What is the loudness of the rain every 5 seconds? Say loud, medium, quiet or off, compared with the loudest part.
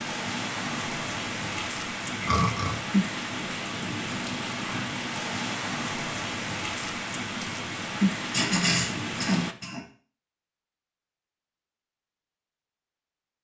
loud, loud, off.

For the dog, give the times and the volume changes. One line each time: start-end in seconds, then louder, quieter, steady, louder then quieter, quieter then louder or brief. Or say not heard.
not heard.